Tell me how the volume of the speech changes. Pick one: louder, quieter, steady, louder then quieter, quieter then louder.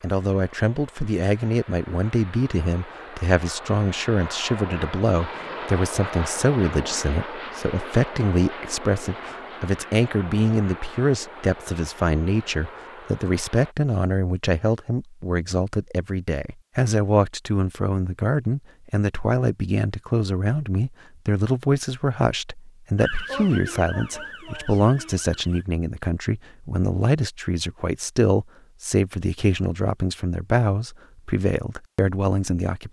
steady.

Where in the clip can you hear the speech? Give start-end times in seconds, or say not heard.
0.0-32.8.